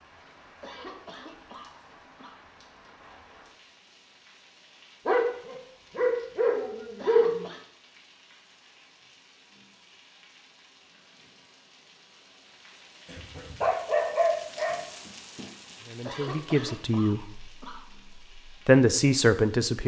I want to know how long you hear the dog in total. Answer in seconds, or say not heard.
4 s.